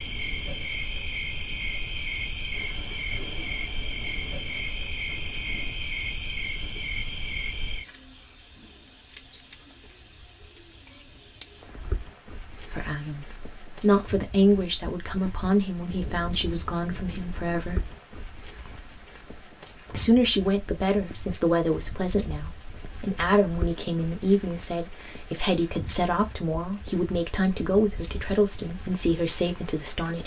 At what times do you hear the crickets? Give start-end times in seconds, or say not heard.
0.0-30.2.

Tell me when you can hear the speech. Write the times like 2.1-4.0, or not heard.
12.7-17.8, 19.9-30.2.